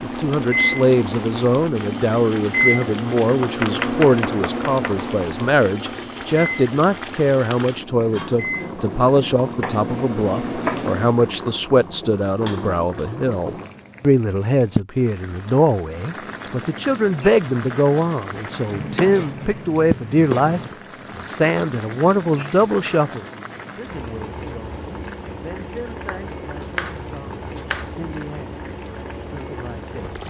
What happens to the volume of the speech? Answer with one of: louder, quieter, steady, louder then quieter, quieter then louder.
quieter.